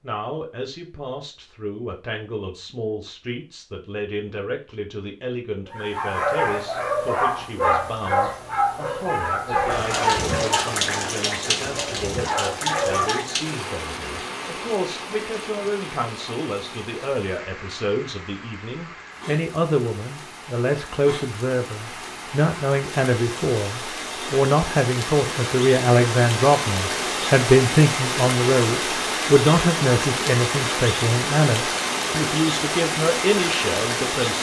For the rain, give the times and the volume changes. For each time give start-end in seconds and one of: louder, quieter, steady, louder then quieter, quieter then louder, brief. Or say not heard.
9.5-34.3 quieter then louder.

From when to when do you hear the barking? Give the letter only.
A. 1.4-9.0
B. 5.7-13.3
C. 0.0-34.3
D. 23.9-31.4
B.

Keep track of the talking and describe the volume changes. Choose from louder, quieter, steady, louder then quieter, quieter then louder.
louder.